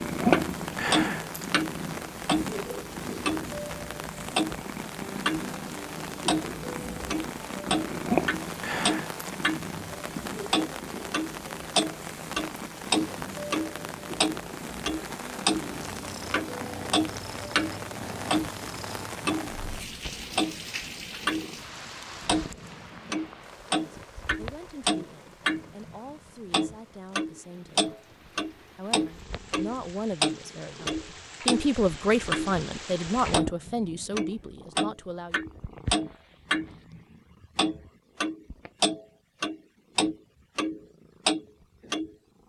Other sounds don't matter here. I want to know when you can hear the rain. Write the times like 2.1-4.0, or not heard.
0.0-33.4.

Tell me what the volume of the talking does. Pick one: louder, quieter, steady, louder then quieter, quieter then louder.
louder then quieter.